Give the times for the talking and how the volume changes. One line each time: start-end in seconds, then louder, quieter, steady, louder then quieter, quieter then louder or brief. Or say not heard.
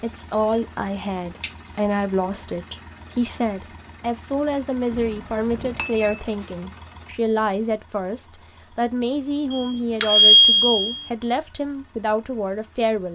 0.0-13.1 steady.